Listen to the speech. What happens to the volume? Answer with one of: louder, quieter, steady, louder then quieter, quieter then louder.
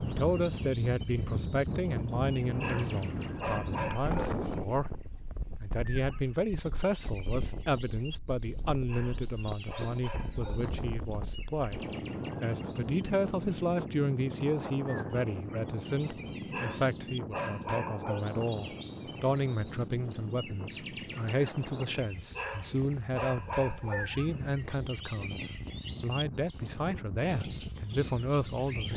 steady.